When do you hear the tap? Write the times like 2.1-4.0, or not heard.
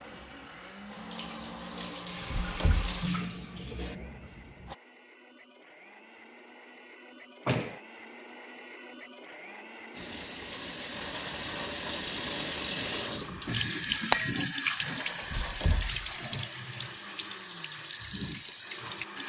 0.0-4.8, 9.9-19.2.